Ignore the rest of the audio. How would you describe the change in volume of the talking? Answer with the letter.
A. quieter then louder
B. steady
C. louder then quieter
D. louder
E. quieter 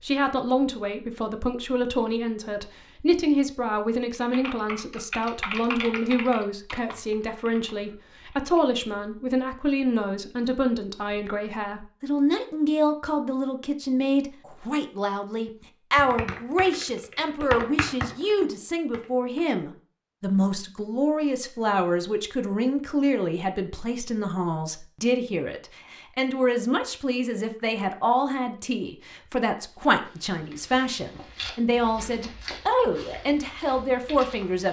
B.